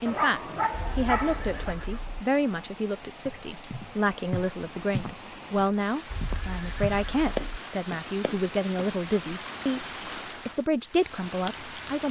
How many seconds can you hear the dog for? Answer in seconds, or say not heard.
2 s.